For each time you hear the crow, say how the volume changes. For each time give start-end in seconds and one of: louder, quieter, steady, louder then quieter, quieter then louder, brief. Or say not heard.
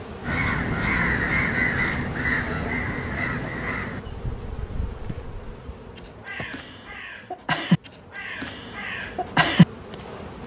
0.2-9.7 quieter then louder.